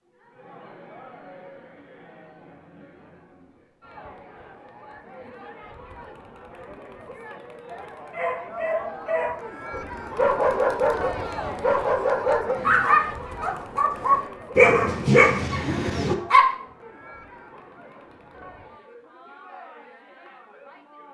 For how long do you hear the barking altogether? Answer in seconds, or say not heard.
8 s.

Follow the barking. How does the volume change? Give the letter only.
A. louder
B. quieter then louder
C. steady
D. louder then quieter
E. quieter
A.